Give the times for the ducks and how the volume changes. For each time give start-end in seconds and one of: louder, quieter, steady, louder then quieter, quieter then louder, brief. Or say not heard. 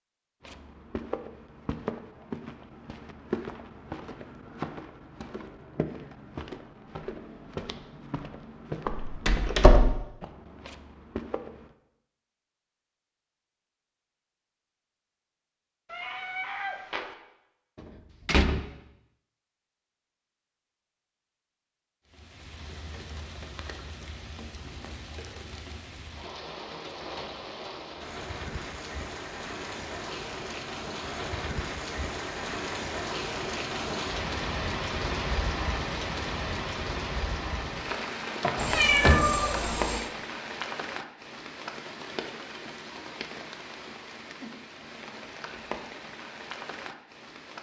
not heard.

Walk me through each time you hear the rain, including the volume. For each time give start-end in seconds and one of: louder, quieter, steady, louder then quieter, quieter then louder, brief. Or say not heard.
22.1-47.5 louder then quieter.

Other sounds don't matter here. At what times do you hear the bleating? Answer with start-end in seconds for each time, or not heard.
not heard.